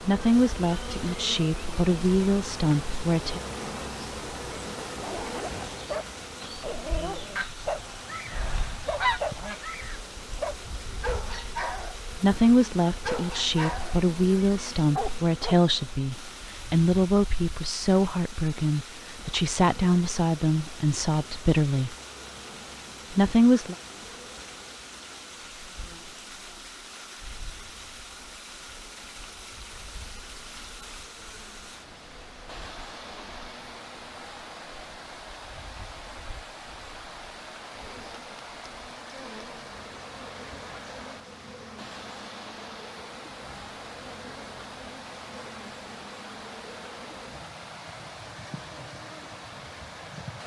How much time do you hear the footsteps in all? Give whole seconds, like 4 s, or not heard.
not heard.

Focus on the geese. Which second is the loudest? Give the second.
9 s.